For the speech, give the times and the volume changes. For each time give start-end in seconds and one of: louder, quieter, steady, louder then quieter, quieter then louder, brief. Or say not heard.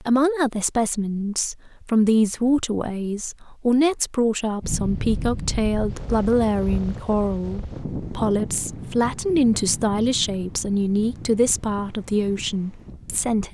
0.0-13.4 steady.